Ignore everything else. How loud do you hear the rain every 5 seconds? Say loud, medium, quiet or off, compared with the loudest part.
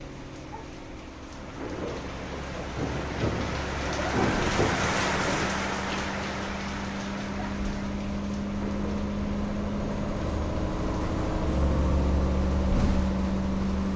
loud, loud, quiet.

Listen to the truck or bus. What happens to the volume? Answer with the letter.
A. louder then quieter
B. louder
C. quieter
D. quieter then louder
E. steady
B.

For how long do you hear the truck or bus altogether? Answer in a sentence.
You can hear the truck or bus for 14 seconds altogether.